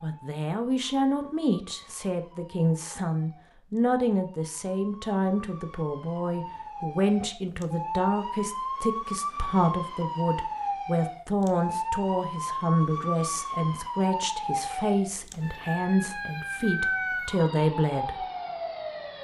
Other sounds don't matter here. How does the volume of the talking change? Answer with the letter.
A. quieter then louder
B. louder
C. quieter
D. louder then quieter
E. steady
E.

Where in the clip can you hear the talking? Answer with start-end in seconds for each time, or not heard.
0.0-18.2.